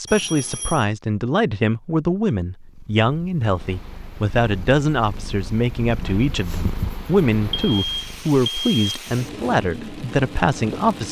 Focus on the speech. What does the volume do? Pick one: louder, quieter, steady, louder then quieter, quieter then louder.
steady.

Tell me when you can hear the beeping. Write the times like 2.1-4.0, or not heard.
0.1-0.8, 7.5-8.9.